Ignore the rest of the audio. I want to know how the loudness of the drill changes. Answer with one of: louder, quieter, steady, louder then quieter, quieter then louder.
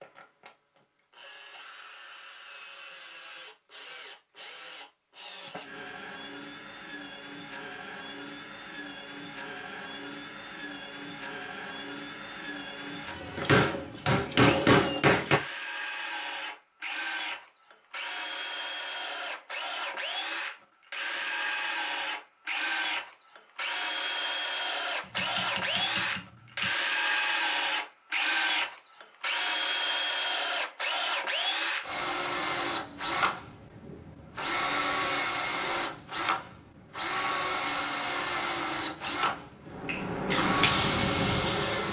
louder.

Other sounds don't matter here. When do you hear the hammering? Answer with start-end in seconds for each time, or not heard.
13.3-15.4, 25.1-26.7.